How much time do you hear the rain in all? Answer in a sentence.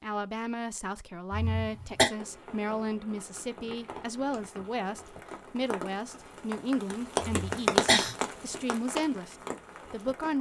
The rain can be heard for 8 seconds in total.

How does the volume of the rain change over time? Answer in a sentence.
The volume of the rain goes up, then down.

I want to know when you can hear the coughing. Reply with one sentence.
You can hear the coughing from 1.3 to 2.0 s and from 7.2 to 8.2 s.